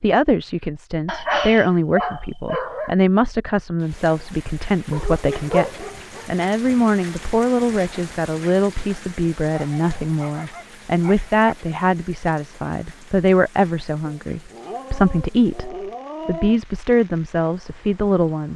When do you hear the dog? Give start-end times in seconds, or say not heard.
1.1-3.0, 4.9-6.8, 9.5-11.6, 14.0-16.6.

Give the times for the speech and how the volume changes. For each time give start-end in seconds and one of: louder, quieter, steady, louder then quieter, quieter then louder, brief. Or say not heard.
0.0-18.5 steady.